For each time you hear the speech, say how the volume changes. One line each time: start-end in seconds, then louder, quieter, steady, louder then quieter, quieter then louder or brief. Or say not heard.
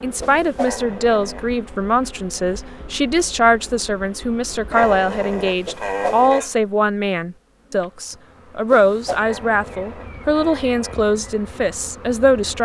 0.0-12.5 steady.